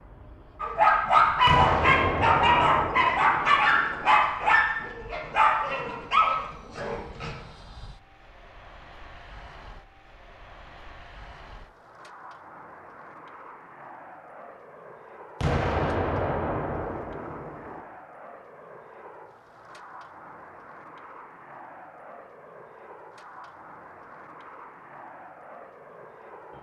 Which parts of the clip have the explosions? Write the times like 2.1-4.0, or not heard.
1.4-3.9, 15.4-17.8.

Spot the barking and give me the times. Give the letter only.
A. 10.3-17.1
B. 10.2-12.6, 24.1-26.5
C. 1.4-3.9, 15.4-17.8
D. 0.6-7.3
D.